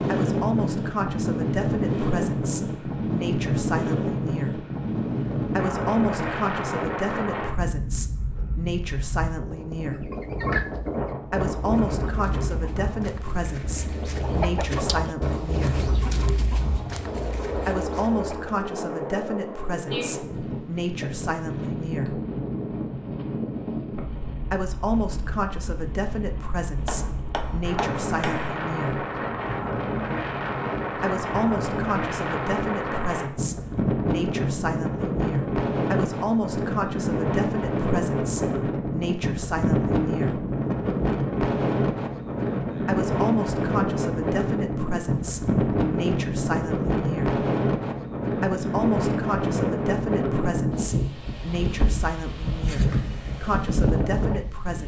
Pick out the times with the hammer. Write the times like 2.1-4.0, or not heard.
26.9-28.6.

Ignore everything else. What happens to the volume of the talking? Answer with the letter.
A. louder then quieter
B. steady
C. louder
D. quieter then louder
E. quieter
B.